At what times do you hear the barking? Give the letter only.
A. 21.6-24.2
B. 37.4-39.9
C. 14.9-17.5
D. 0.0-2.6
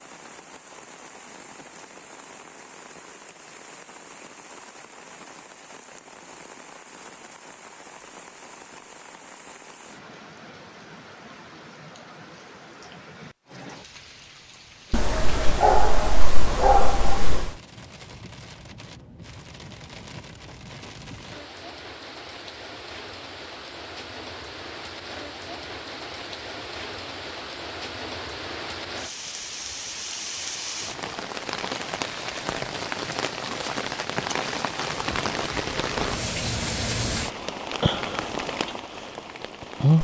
C.